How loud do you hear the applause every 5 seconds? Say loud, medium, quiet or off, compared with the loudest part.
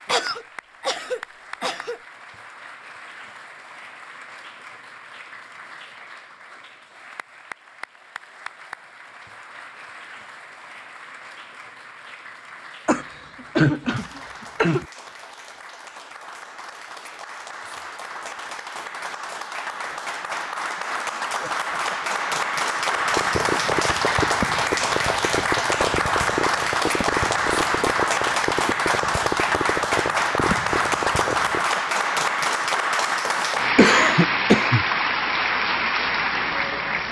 quiet, quiet, quiet, quiet, loud, loud, loud, loud.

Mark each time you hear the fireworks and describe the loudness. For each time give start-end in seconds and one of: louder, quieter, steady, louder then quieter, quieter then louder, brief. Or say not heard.
22.9-31.6 steady.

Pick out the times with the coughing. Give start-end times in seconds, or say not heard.
0.1-2.0, 12.8-14.8, 33.8-34.9.